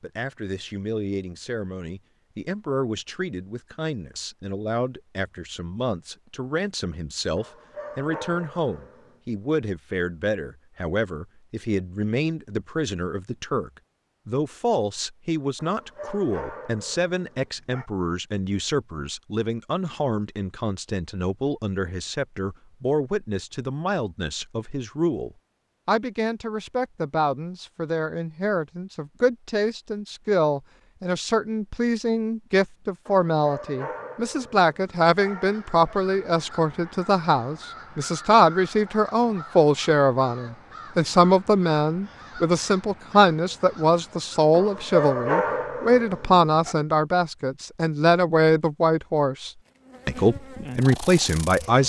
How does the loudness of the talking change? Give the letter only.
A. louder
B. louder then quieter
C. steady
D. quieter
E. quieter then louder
A.